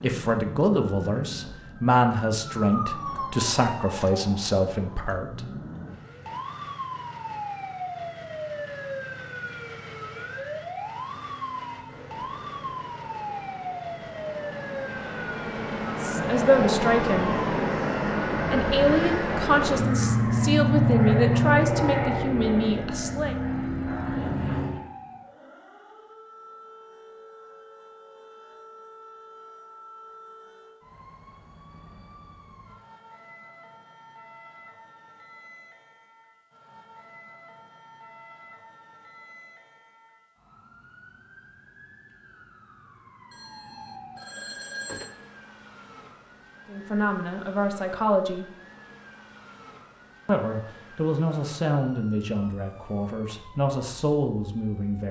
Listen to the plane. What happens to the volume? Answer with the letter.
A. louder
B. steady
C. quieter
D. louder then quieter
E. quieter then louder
D.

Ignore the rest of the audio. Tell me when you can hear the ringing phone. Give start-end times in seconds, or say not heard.
43.3-45.1.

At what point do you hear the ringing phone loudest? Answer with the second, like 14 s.
45 s.